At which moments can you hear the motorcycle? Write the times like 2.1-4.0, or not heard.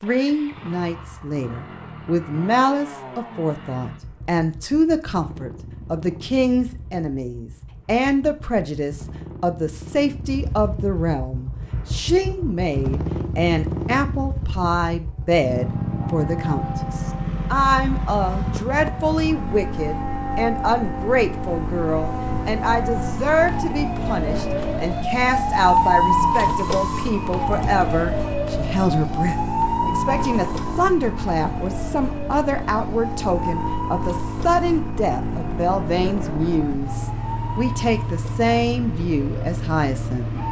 0.0-40.4.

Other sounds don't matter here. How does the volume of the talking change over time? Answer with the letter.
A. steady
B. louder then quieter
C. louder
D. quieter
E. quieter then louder
A.